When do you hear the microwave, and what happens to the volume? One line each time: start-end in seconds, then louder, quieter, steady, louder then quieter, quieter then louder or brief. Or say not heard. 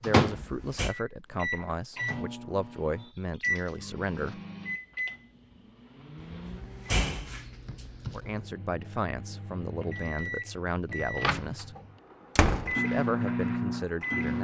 0.0-14.3 quieter then louder.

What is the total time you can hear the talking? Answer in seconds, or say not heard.
10 s.